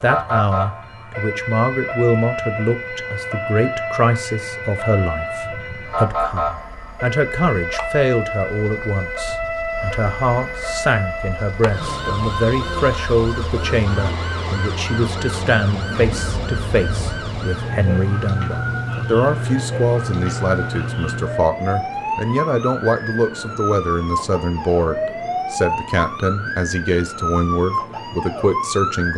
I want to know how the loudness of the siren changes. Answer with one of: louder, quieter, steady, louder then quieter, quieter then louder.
steady.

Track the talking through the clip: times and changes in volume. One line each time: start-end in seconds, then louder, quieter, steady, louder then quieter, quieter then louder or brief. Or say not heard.
0.0-29.1 steady.